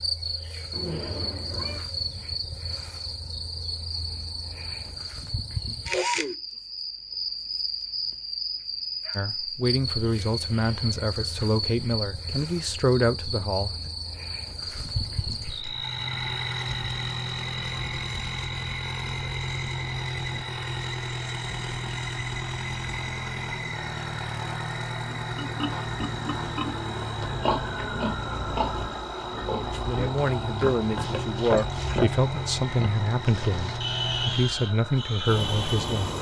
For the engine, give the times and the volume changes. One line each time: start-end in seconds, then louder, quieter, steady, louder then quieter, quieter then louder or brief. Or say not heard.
15.6-36.1 steady.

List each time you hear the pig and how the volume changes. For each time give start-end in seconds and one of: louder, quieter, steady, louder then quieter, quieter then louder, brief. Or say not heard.
25.1-36.0 steady.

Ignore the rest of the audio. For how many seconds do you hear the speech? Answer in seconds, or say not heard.
11 s.